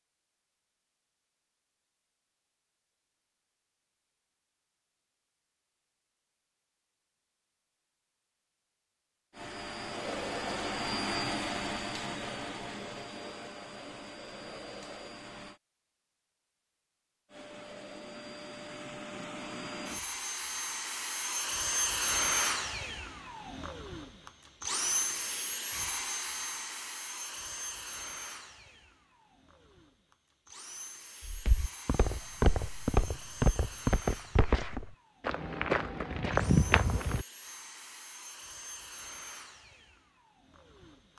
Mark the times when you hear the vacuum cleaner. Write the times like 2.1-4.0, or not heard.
9.3-15.6, 17.3-41.1.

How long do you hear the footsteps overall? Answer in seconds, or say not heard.
6 s.